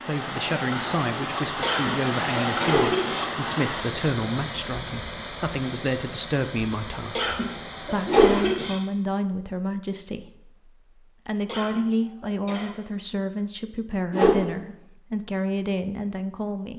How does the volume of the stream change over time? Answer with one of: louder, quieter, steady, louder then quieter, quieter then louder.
quieter.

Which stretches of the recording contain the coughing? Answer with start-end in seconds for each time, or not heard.
1.6-3.3, 7.2-8.8, 11.4-12.7.